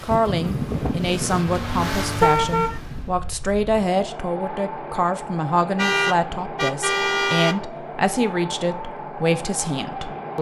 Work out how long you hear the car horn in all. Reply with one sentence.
The car horn can be heard for 3 seconds in total.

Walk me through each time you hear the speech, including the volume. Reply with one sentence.
You can hear the speech from 0.0 to 10.3 s, at a steady volume.